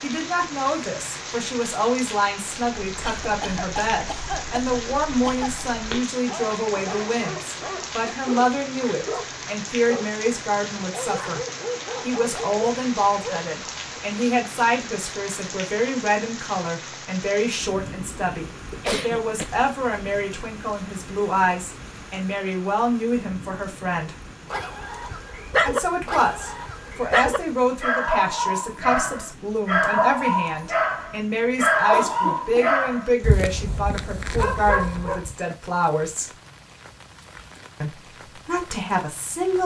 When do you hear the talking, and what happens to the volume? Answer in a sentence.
The talking can be heard from 0.0 to 11.4 s, at a steady volume; from 12.0 to 24.1 s, at a steady volume; from 25.6 to 36.3 s, at a steady volume; and briefly from 37.8 to 39.6 s.